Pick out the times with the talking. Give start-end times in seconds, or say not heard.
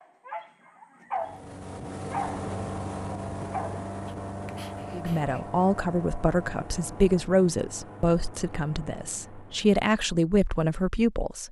4.9-11.4.